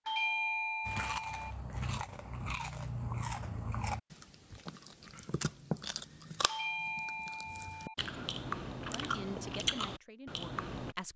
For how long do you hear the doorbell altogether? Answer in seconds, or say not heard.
3 s.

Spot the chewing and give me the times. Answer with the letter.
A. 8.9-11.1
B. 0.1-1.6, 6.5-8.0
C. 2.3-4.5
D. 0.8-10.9
D.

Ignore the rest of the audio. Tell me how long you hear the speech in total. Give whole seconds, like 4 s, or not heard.
2 s.